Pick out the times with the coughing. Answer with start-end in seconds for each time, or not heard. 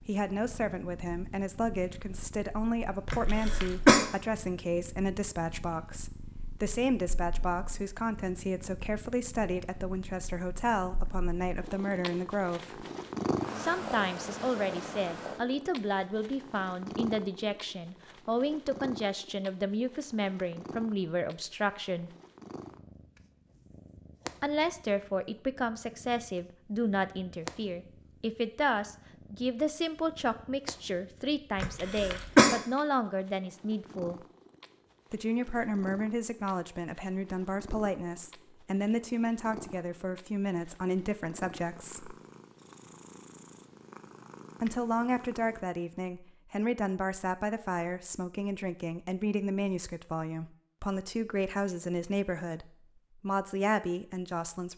3.0-4.0, 31.6-32.6.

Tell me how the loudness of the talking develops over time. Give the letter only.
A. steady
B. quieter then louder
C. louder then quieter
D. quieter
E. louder
A.